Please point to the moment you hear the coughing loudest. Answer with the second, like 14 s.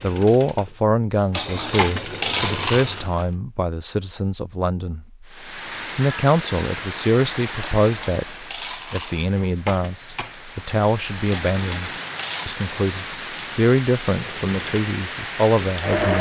2 s.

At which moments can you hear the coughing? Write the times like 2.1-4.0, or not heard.
1.4-2.0, 9.4-10.3.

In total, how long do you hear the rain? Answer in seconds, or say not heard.
11 s.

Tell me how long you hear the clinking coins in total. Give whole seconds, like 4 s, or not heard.
5 s.